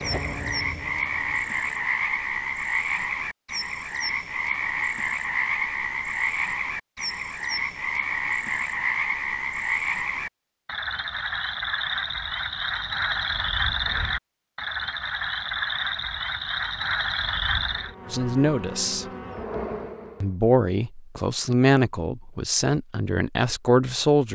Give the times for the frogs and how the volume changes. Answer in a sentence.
The frogs can be heard from 0.0 to 17.9 s, at a steady volume.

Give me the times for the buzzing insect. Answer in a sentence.
The buzzing insect can be heard from 0.0 to 1.9 s and from 17.7 to 20.4 s.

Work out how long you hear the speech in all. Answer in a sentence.
The speech can be heard for 5 seconds in total.